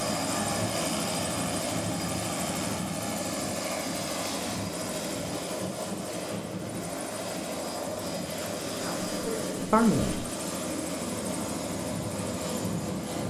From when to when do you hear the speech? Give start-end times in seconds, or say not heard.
8.7-10.2.